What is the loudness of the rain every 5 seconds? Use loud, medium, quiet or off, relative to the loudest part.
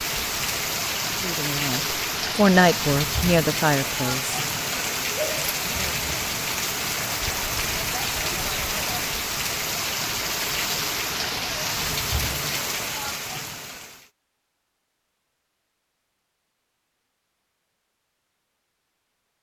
loud, loud, loud, off.